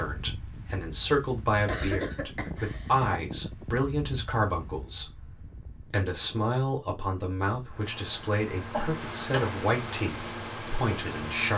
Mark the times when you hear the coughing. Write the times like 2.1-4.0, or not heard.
1.6-3.2, 8.7-9.6.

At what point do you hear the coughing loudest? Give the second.
2 s.